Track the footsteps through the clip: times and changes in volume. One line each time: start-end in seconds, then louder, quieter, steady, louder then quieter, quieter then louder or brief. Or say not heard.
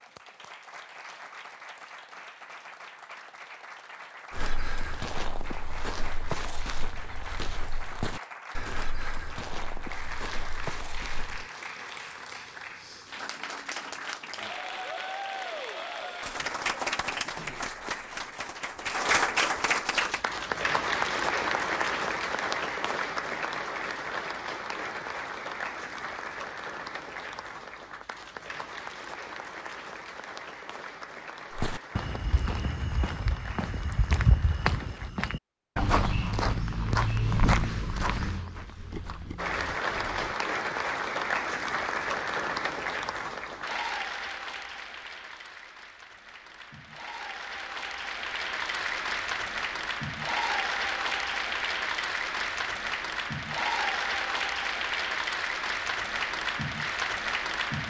4.3-11.4 steady
31.5-40.4 louder then quieter.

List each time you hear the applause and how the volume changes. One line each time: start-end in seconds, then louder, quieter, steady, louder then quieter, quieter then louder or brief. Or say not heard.
0.0-35.1 louder then quieter
39.4-57.8 quieter then louder.